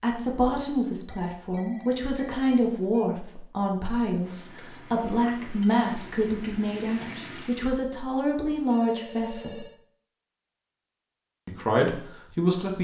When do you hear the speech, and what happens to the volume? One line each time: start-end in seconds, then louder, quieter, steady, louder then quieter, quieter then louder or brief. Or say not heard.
0.0-9.7 steady
11.4-12.7 brief.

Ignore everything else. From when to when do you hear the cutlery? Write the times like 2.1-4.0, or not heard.
not heard.